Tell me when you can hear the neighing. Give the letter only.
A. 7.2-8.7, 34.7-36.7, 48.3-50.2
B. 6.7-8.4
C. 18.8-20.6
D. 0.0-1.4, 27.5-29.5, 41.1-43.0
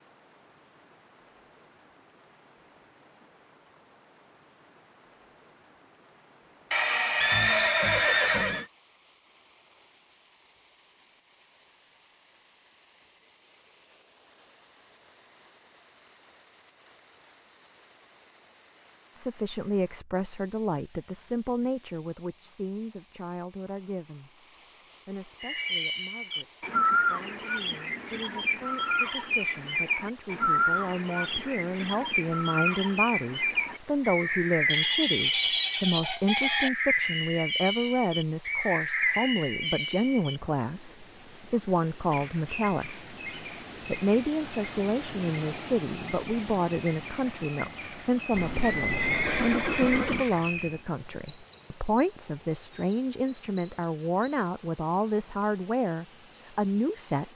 A.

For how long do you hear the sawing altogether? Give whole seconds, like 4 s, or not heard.
2 s.